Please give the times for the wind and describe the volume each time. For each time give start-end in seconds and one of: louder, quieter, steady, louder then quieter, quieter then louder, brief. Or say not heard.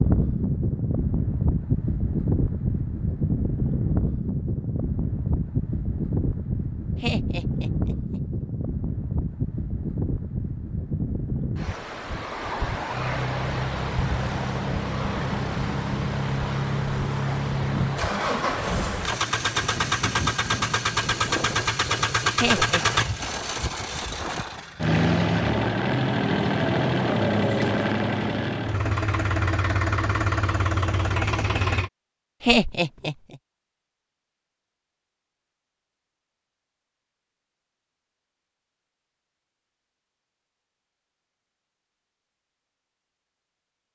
0.0-24.7 quieter.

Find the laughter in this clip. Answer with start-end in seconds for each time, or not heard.
7.0-8.2, 22.4-23.0, 32.4-33.4.